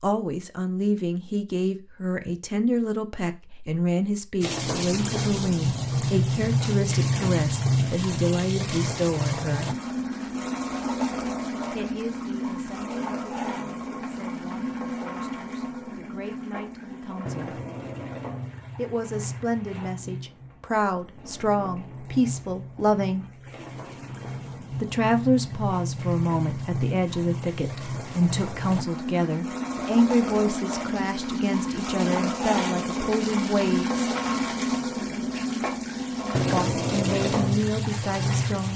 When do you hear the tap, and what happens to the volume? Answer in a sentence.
The tap can be heard from 4.4 to 38.7 s, getting quieter then louder.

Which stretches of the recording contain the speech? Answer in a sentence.
The speech can be heard from 0.0 to 9.8 s, from 11.7 to 17.6 s, from 18.8 to 23.2 s, from 24.7 to 33.9 s and from 36.5 to 38.7 s.